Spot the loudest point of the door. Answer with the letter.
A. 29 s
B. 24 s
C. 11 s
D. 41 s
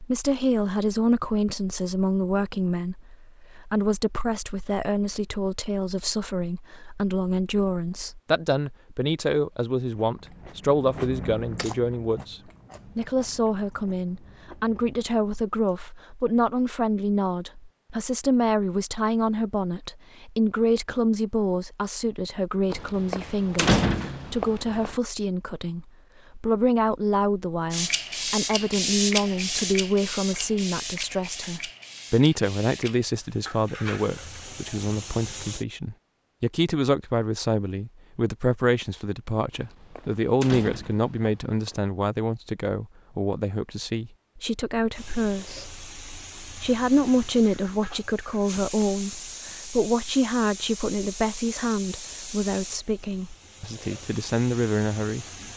B.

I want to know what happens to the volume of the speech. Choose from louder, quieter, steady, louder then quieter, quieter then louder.
steady.